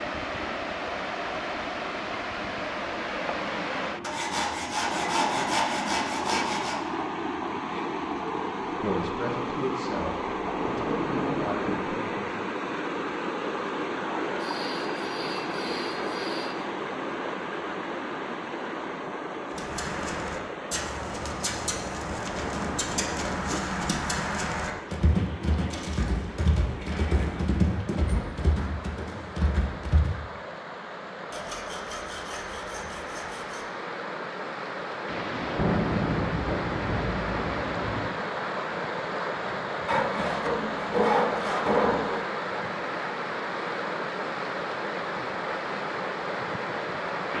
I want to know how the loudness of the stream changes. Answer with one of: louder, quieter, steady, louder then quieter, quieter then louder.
quieter then louder.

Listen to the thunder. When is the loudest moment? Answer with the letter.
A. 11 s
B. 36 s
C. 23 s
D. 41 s
B.